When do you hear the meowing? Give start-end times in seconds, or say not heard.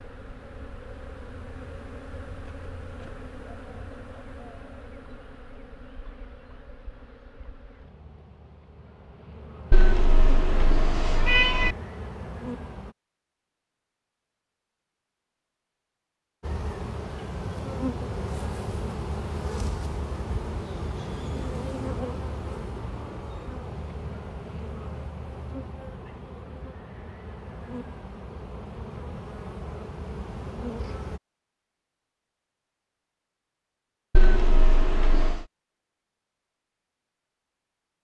9.7-11.8, 34.1-35.5.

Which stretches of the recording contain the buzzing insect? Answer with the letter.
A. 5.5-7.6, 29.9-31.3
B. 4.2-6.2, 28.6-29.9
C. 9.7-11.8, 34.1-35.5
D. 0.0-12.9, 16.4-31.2
D.